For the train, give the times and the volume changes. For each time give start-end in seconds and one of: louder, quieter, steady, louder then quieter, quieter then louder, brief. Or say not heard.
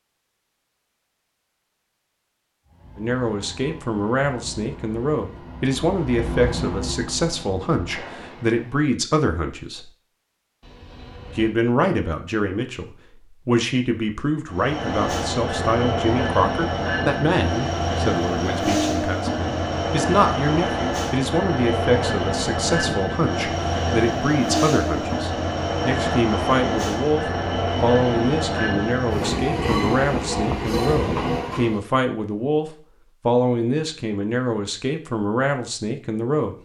2.6-8.8 louder then quieter
14.5-31.8 steady.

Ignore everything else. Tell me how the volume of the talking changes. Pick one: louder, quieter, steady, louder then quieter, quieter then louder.
steady.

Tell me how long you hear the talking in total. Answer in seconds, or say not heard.
32 s.